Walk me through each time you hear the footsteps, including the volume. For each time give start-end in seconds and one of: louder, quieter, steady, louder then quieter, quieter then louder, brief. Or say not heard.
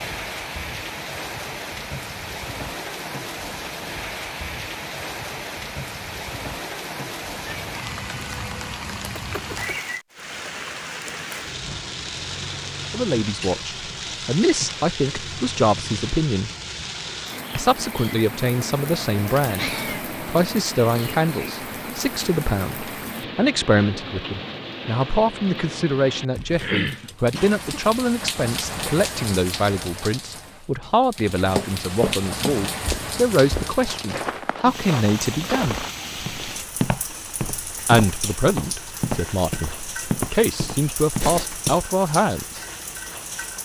31.4-41.8 steady.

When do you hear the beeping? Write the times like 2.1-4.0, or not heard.
not heard.